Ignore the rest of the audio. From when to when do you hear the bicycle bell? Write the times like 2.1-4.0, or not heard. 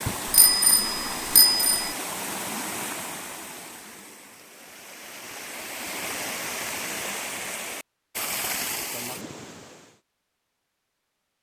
0.1-1.9.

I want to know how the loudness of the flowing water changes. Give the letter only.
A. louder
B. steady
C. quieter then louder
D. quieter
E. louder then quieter
C.